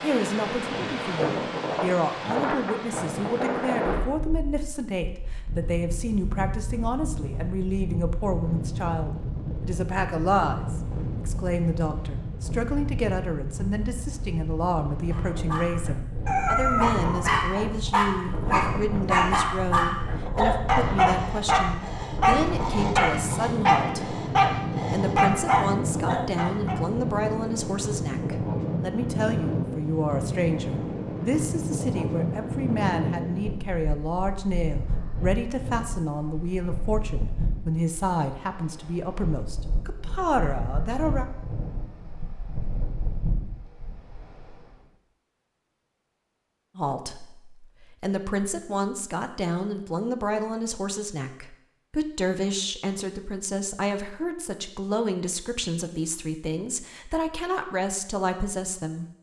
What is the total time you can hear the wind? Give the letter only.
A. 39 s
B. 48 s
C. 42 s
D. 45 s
D.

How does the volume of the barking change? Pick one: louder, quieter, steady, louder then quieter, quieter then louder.
steady.